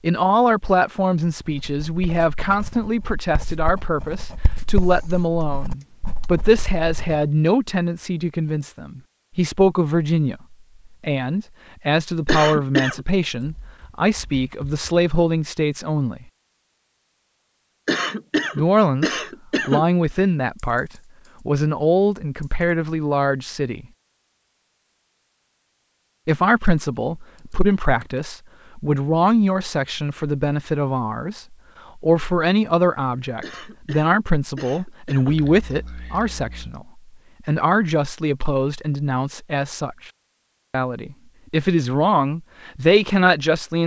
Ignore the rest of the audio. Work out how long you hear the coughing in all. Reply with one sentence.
The coughing can be heard for 5 seconds in total.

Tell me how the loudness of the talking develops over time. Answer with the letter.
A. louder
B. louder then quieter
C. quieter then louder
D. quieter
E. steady
E.